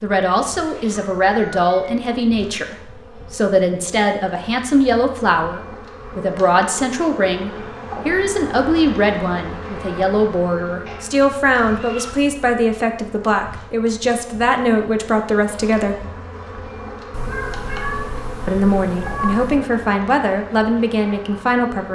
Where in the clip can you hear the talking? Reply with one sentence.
The talking can be heard from 0.0 to 16.1 s and from 18.4 to 21.9 s.